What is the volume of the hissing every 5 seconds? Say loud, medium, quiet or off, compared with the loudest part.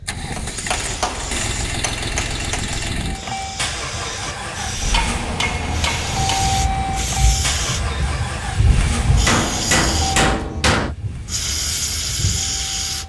medium, loud, loud.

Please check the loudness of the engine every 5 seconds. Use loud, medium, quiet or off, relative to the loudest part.
loud, loud, medium.